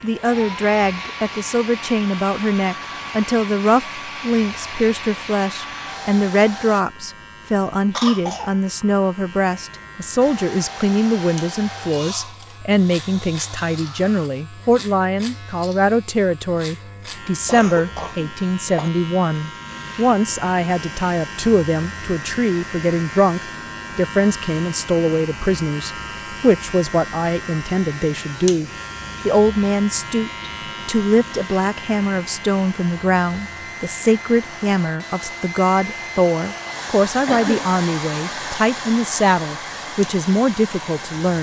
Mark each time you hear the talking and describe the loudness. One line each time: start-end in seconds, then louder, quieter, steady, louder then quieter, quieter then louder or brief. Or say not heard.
0.0-41.3 steady.